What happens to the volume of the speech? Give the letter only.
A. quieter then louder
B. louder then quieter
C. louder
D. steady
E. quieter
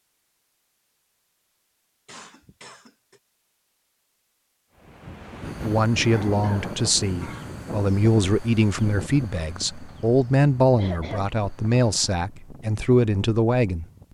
D.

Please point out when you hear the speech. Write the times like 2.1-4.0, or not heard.
5.6-13.8.